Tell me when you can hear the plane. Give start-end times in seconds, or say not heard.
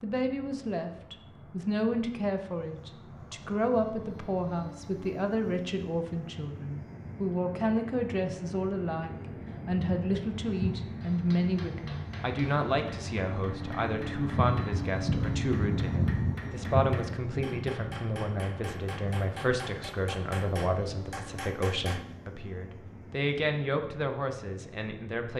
0.0-25.2.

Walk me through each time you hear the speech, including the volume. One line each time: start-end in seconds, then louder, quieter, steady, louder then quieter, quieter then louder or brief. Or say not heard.
0.0-25.3 steady.